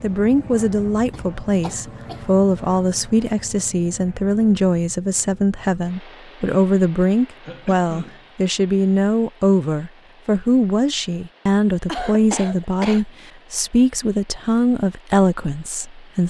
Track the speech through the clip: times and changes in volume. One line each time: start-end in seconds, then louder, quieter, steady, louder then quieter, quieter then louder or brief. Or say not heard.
0.0-16.2 steady.